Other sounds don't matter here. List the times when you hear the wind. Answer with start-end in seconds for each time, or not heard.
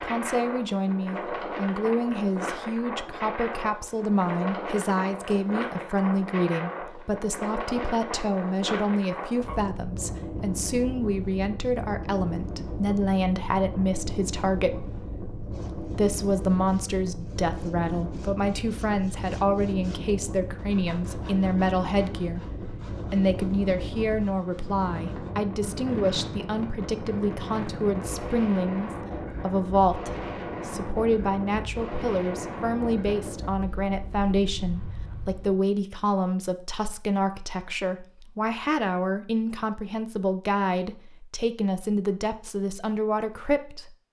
0.0-35.5.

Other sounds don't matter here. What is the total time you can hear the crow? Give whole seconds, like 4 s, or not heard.
not heard.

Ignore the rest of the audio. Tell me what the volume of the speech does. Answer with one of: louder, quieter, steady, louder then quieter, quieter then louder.
steady.